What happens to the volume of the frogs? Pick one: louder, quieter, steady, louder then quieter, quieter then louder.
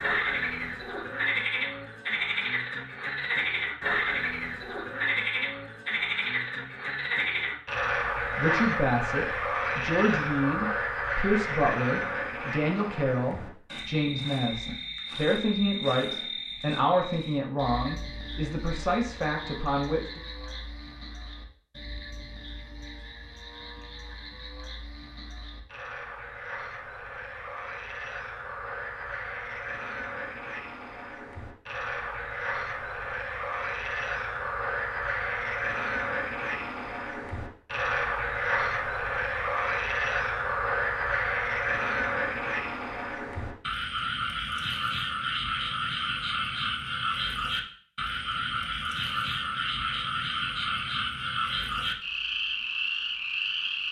quieter then louder.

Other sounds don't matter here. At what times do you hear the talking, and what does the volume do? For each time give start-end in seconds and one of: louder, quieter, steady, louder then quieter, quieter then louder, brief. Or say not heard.
8.3-20.2 steady.